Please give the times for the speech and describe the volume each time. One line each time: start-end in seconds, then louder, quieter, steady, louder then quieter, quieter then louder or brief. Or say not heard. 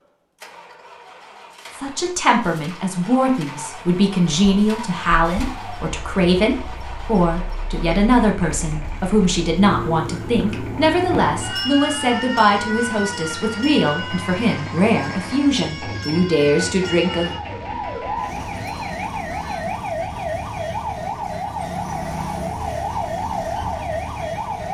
1.8-17.4 steady.